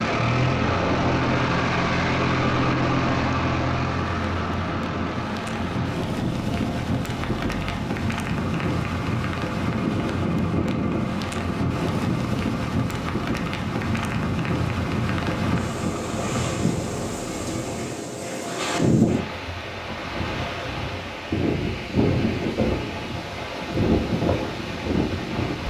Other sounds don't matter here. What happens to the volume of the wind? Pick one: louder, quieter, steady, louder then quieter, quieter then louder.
steady.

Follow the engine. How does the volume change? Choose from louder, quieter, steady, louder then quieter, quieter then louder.
quieter.